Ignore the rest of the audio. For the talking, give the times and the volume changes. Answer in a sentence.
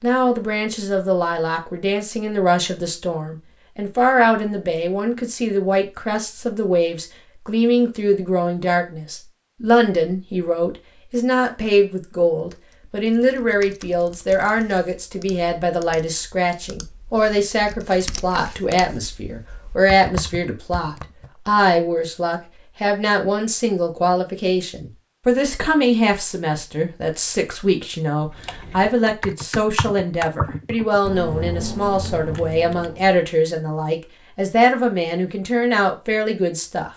The talking can be heard from 0.0 to 36.9 s, at a steady volume.